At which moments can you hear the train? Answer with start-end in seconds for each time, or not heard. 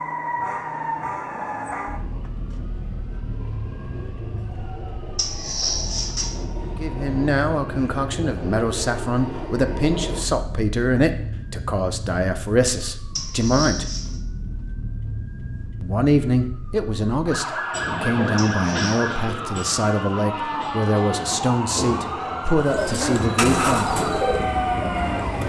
0.1-10.2, 17.7-25.4.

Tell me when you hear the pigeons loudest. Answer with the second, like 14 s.
24 s.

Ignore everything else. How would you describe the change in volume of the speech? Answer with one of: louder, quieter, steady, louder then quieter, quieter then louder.
steady.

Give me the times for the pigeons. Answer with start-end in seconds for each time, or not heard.
22.6-25.4.